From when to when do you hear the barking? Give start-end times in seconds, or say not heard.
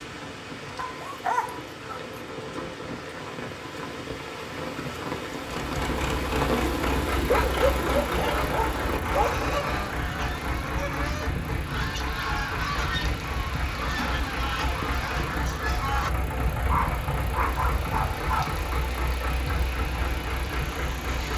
0.8-2.0, 7.3-9.5, 16.7-18.4.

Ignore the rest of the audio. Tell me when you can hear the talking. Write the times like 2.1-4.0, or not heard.
not heard.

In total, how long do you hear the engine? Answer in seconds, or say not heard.
16 s.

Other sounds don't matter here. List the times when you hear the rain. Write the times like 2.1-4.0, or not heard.
0.0-21.3.